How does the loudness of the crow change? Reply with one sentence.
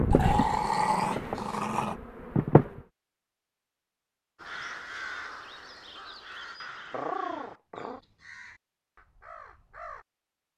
The loudness of the crow goes down.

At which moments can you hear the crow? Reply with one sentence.
The crow can be heard from 4.3 to 10.1 s.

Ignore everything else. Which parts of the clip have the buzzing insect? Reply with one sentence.
You can hear the buzzing insect from 0.0 to 2.8 s.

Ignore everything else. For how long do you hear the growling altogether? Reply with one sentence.
The growling can be heard for 3 seconds in total.